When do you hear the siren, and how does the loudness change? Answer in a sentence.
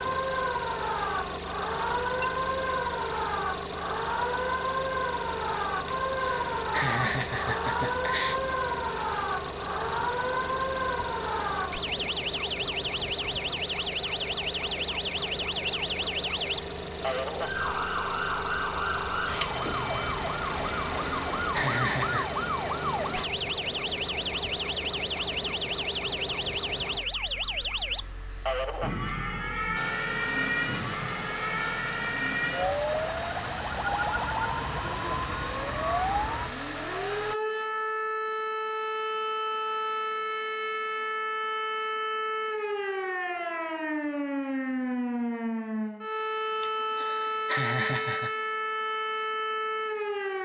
You can hear the siren from 0.0 to 50.4 s, at a steady volume.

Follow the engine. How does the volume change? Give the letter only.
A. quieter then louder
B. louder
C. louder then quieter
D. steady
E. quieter
D.